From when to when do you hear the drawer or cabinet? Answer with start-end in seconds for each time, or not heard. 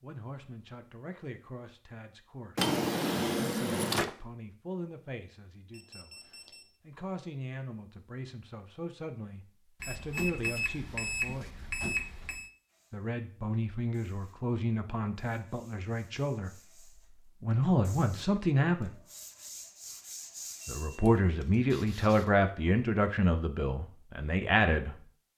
2.5-4.1.